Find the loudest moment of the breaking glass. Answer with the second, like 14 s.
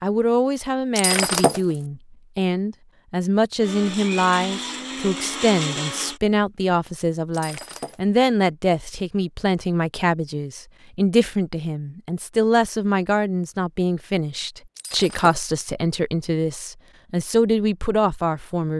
1 s.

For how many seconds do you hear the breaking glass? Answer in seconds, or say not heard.
2 s.